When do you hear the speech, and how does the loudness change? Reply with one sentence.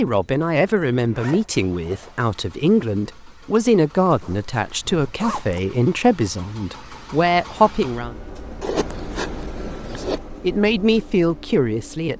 The speech can be heard from 0.0 to 8.2 s, at a steady volume; and briefly from 9.8 to 12.1 s.